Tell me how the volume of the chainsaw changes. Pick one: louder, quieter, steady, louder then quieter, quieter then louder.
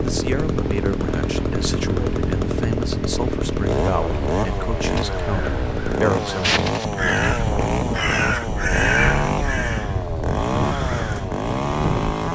steady.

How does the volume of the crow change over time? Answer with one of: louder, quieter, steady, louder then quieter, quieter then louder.
louder then quieter.